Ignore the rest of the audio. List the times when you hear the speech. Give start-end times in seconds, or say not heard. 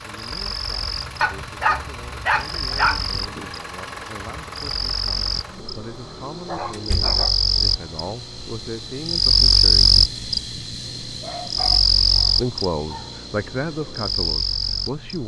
0.1-10.0, 12.3-15.2.